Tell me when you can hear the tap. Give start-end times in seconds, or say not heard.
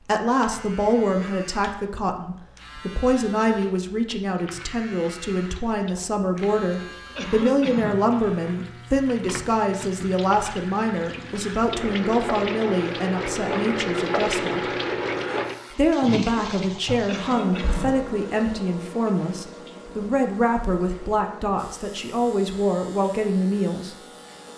4.3-24.5.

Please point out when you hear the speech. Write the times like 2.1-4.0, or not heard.
0.1-14.7, 15.8-23.9.